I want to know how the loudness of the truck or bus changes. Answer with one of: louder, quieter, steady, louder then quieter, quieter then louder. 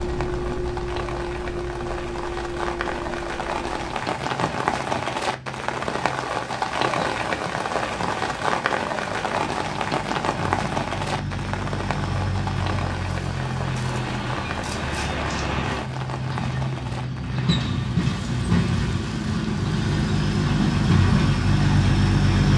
quieter then louder.